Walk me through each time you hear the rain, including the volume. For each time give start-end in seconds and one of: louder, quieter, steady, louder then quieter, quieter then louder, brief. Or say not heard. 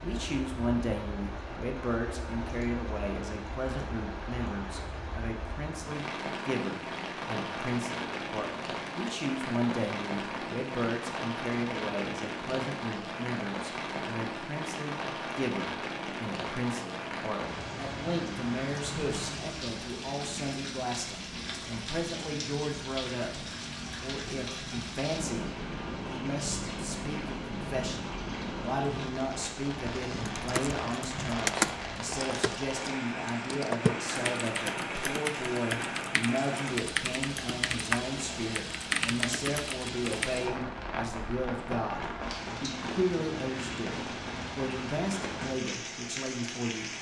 0.0-46.9 steady.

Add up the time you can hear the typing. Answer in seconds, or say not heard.
10 s.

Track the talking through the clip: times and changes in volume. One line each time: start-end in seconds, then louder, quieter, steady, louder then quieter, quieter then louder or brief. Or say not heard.
0.0-25.5 steady
26.1-46.9 steady.